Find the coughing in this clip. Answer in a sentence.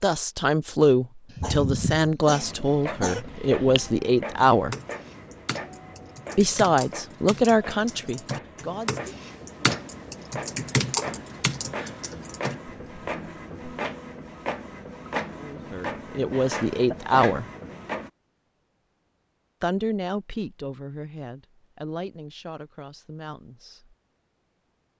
You can hear the coughing from 1.3 to 3.2 s and from 16.2 to 17.2 s.